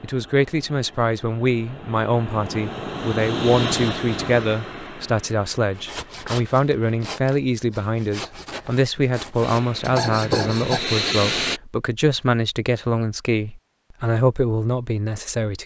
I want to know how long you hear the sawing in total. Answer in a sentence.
You can hear the sawing for 5 seconds altogether.